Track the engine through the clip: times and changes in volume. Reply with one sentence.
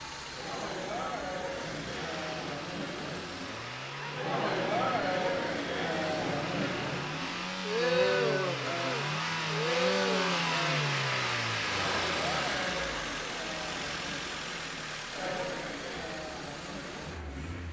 The engine can be heard from 0.0 to 17.6 s, getting louder then quieter.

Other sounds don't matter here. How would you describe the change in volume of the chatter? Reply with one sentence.
The loudness of the chatter goes up, then down.